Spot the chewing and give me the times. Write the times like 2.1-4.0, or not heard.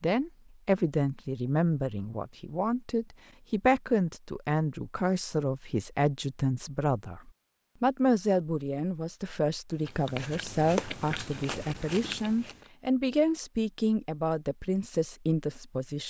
9.8-12.7.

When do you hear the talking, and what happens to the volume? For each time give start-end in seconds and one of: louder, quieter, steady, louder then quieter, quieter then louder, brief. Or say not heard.
0.0-16.0 steady.